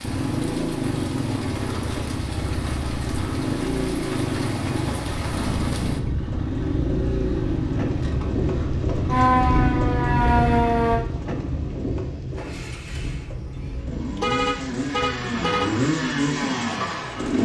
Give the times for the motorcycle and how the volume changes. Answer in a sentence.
The motorcycle can be heard from 0.0 to 17.3 s, getting quieter then louder.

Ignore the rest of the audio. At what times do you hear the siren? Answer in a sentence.
You can hear the siren from 9.1 to 11.1 s.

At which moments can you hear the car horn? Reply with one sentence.
The car horn can be heard from 13.6 to 15.7 s.